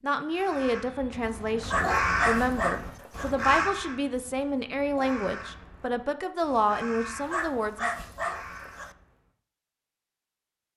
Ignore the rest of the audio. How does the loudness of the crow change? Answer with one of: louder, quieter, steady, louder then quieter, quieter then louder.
quieter.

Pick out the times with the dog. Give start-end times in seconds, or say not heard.
1.6-3.3, 7.2-8.9.